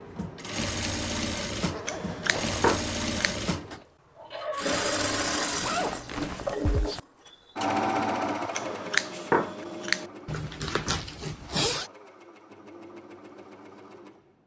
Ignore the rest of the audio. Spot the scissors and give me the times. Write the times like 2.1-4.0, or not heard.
1.9-3.4, 8.5-10.1.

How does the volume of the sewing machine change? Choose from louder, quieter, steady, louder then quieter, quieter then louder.
quieter.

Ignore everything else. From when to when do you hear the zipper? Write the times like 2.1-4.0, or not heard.
1.7-2.6, 5.6-7.0, 10.2-11.8.